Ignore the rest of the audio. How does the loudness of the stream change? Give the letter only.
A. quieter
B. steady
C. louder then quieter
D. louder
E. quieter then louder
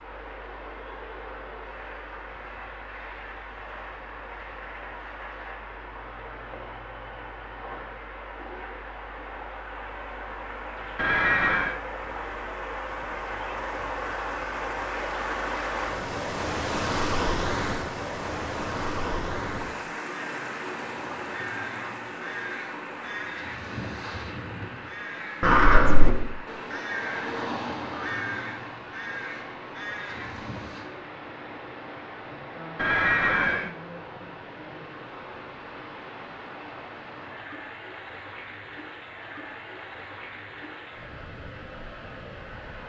C.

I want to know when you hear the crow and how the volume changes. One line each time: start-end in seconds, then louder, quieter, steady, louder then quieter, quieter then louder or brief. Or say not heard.
20.1-30.9 louder then quieter.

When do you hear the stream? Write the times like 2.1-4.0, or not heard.
0.0-42.8.